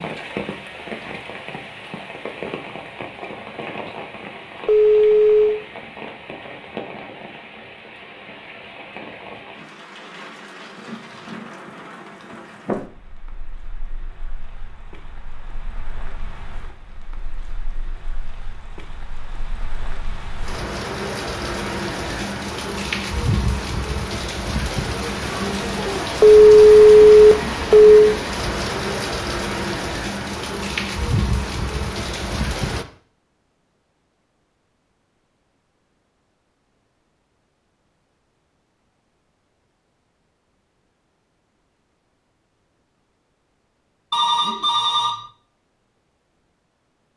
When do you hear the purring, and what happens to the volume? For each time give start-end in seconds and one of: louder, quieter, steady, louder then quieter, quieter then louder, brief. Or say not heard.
not heard.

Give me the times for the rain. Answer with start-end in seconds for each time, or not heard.
0.0-32.9.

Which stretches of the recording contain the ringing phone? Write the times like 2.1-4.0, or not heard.
4.7-5.6, 26.2-27.9, 44.1-45.2.